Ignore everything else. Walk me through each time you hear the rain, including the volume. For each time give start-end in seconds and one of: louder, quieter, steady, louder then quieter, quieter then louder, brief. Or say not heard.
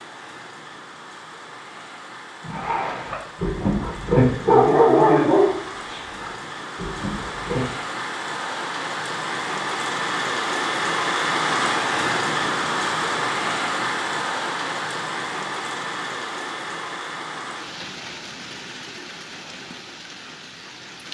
0.0-21.1 louder then quieter.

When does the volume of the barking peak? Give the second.
5 s.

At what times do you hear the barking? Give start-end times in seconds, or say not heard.
2.5-7.7.